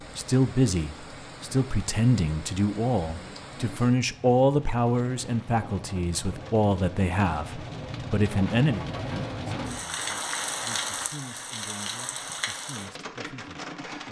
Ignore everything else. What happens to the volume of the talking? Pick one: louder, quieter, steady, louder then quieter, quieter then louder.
quieter.